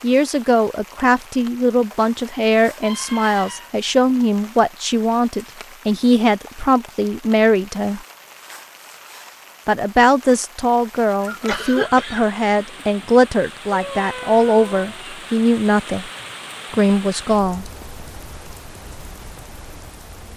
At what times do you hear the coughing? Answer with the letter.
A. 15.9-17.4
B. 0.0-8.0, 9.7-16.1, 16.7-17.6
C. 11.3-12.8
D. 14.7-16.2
C.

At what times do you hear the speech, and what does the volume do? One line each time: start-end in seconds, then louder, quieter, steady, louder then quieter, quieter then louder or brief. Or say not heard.
0.0-8.0 steady
9.7-16.1 steady
16.7-17.6 brief.